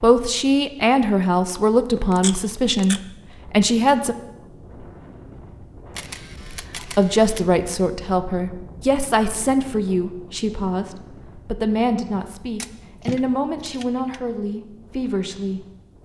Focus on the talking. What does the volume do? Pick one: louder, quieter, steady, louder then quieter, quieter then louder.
quieter.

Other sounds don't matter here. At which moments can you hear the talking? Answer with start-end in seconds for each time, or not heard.
0.0-4.2, 6.8-15.7.